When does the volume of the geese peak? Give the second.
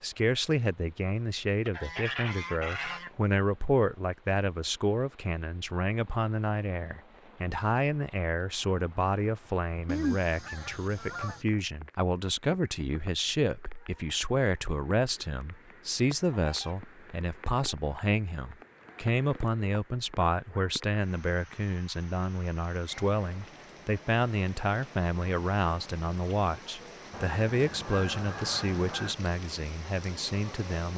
10 s.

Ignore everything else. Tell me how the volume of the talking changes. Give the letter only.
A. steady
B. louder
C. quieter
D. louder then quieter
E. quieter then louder
A.